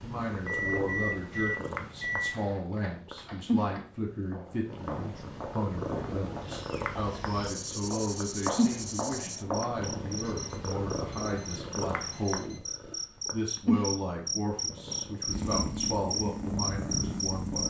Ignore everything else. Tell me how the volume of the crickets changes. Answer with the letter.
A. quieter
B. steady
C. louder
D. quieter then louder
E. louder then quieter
C.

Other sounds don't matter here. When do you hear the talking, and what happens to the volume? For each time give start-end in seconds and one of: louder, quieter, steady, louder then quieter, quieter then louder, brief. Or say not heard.
0.0-17.6 steady.